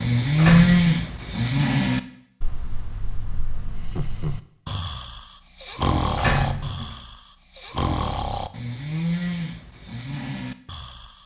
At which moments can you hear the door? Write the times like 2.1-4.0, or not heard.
0.3-0.9, 6.2-6.9.